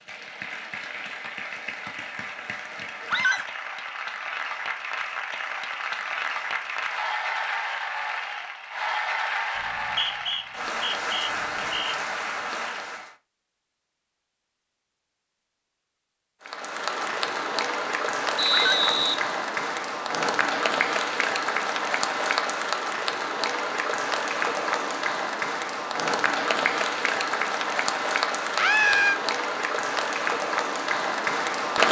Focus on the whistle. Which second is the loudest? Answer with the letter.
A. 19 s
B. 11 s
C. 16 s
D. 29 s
A.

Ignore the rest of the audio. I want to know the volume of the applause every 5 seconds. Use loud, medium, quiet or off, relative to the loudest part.
medium, medium, medium, loud, loud, loud, loud.